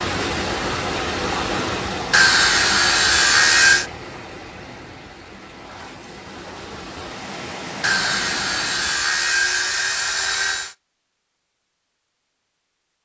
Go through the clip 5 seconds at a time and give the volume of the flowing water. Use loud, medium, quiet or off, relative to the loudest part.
loud, medium, off.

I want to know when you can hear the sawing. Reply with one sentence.
You can hear the sawing from 2.1 to 3.9 s and from 7.8 to 10.8 s.